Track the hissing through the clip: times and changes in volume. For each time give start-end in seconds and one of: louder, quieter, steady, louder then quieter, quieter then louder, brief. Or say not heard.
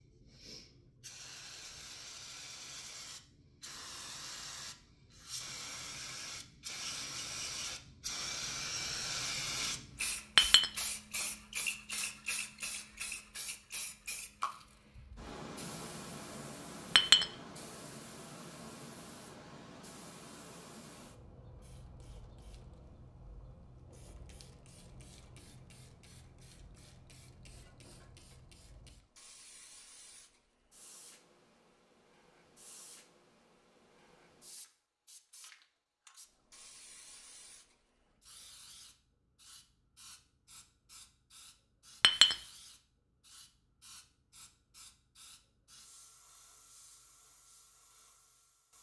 0.0-48.7 quieter.